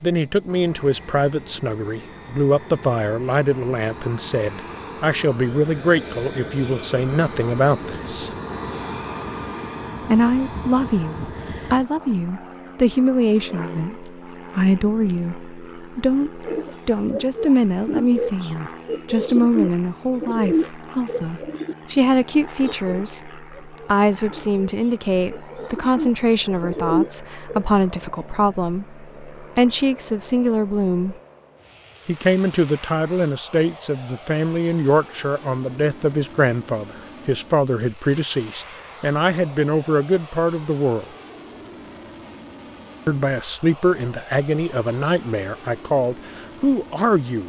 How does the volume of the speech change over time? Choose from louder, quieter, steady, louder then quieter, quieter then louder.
steady.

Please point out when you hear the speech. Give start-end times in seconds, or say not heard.
0.0-8.3, 10.1-31.1, 32.0-41.0, 43.0-47.4.